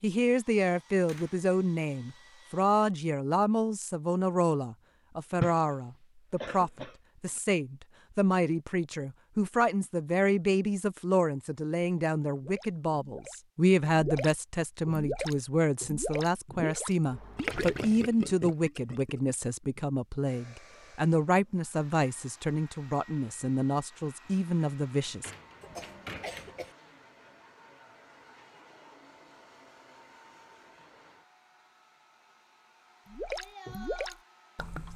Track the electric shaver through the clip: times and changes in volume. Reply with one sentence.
The electric shaver can't be heard in this clip.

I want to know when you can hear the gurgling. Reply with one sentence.
You can hear the gurgling from 12.3 to 19.8 s and from 33.0 to 34.9 s.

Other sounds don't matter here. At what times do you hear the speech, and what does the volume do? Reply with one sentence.
You can hear the speech from 0.0 to 25.3 s, at a steady volume.